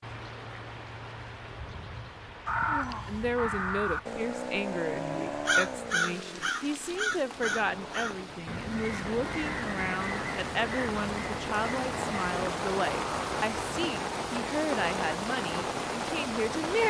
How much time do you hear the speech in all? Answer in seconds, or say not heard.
14 s.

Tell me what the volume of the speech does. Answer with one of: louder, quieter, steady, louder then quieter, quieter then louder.
steady.